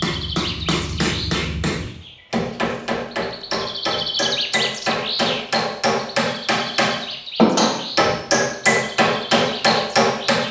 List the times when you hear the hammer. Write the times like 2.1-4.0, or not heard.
0.0-10.4.